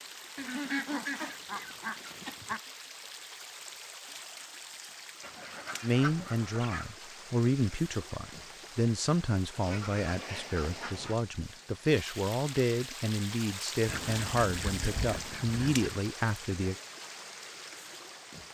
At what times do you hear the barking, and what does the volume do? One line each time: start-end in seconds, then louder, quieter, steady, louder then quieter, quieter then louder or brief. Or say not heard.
not heard.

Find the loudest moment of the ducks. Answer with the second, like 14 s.
1 s.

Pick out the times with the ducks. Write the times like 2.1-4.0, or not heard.
0.3-2.6, 5.2-6.9, 9.6-11.2, 13.8-15.9.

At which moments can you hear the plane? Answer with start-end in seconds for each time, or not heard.
not heard.